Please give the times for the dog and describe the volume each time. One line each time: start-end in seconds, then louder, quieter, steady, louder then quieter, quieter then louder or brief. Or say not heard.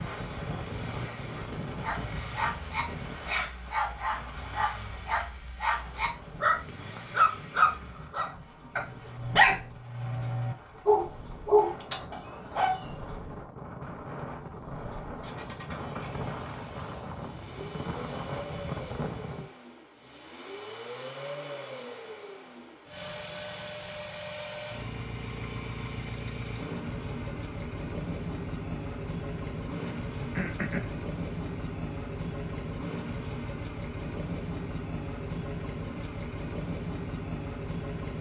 1.8-12.9 louder.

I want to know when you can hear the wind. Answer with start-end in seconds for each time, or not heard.
0.0-19.5.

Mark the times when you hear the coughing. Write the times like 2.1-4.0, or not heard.
29.8-30.9.